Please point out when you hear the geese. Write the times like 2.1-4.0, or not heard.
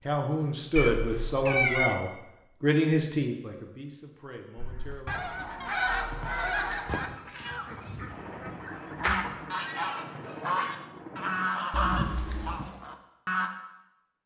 4.5-13.5.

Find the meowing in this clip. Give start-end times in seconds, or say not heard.
0.8-1.9, 5.6-7.6, 11.7-12.7.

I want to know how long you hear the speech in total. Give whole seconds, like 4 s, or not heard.
5 s.